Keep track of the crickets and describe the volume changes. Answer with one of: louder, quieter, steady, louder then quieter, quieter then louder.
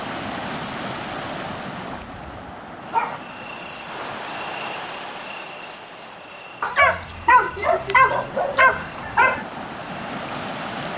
quieter.